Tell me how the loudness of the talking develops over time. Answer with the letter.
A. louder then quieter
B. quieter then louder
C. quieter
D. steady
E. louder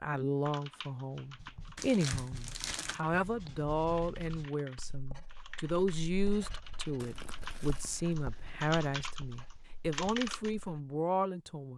D.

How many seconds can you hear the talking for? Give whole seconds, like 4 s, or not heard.
12 s.